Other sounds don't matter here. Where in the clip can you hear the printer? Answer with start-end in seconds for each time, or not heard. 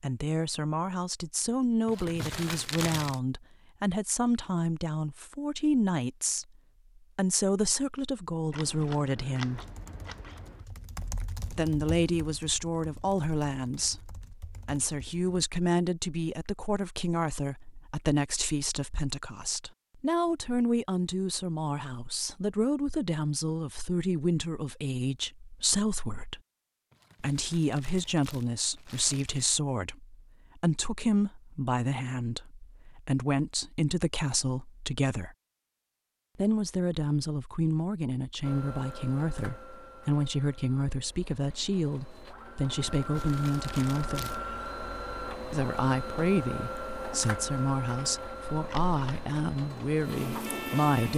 38.4-51.1.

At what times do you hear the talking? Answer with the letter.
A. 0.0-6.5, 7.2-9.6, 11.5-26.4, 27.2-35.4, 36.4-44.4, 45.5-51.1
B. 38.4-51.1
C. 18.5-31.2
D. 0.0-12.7
A.